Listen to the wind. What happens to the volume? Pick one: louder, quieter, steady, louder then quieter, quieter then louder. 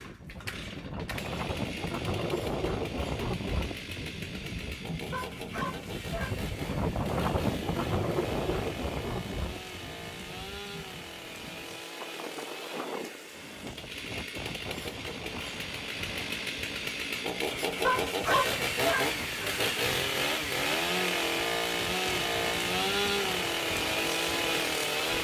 quieter.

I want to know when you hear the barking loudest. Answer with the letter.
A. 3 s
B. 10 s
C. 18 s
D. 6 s
C.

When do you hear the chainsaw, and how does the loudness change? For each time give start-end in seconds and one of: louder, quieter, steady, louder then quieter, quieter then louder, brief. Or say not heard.
0.0-25.1 louder.